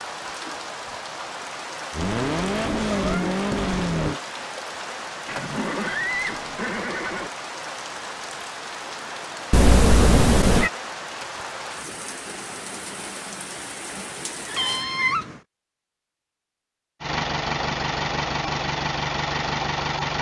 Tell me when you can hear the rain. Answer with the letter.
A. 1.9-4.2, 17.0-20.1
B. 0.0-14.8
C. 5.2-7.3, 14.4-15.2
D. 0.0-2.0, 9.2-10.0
B.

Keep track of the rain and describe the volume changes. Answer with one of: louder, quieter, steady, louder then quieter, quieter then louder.
steady.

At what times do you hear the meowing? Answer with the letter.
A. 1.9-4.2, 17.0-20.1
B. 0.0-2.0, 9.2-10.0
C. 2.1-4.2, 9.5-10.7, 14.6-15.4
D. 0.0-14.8
C.